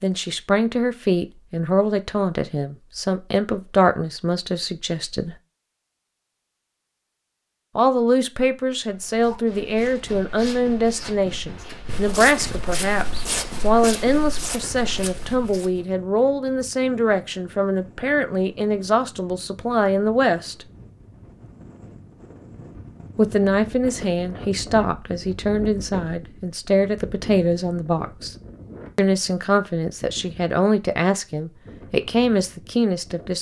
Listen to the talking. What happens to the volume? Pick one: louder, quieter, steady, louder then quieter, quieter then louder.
steady.